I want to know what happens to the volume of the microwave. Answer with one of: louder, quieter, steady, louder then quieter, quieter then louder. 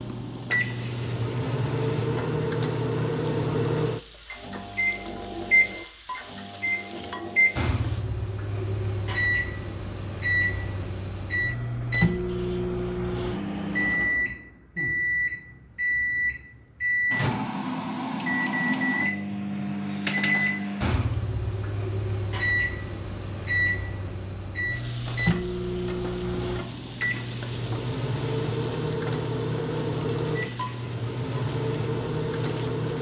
steady.